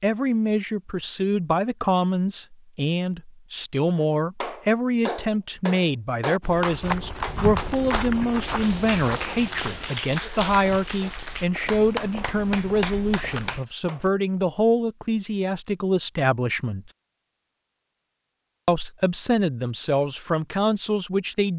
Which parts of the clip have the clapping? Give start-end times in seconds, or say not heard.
4.0-14.0.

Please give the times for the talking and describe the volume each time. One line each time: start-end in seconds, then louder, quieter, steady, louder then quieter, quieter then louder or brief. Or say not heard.
0.0-16.9 steady
18.6-21.5 brief.